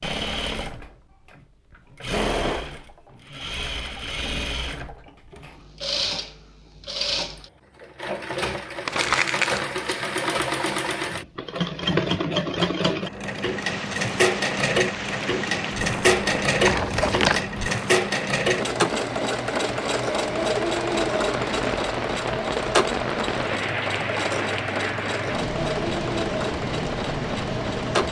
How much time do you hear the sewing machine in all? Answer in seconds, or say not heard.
28 s.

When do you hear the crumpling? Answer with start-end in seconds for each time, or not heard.
8.8-9.7, 16.6-17.4.